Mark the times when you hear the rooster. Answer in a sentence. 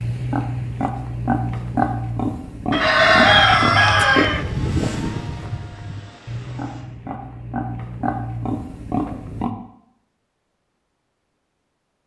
You can hear the rooster from 2.7 to 4.5 s.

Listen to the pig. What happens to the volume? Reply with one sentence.
The loudness of the pig goes down, then up.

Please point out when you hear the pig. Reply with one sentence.
You can hear the pig from 0.0 to 9.5 s.